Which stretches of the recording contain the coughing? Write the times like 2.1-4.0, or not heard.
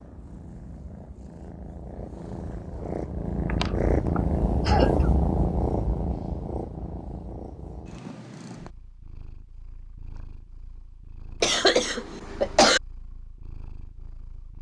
3.5-5.0, 11.4-12.8.